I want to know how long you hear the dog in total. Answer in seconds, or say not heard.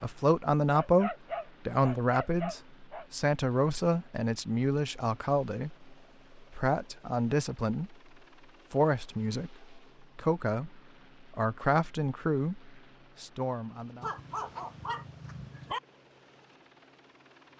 4 s.